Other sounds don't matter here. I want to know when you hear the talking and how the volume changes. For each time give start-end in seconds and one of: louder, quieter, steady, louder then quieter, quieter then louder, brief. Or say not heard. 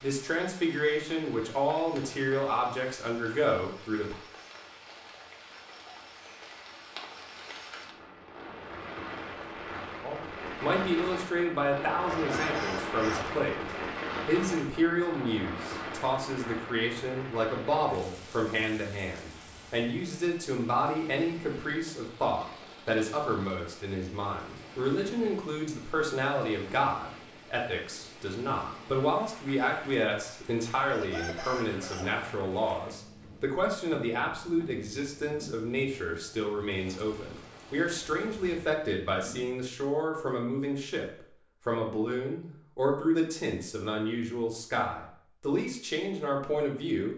0.0-4.2 steady
10.0-47.1 steady.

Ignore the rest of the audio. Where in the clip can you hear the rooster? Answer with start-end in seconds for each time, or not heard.
12.1-13.3, 30.9-32.4.